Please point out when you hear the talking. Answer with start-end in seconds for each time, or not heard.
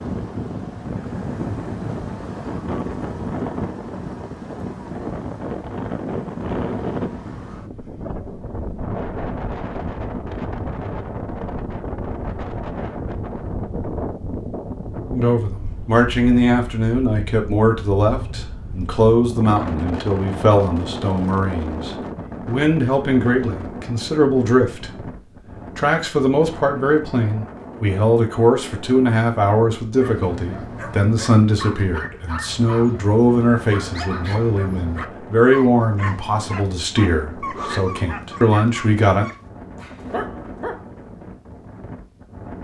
15.1-25.1, 25.8-39.3.